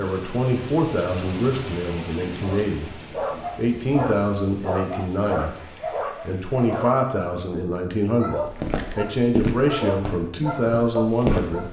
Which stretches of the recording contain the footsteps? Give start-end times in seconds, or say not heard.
8.4-11.6.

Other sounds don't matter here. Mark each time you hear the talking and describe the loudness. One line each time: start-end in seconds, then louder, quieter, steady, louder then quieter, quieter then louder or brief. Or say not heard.
0.0-2.9 brief
3.5-5.6 brief
6.2-11.6 steady.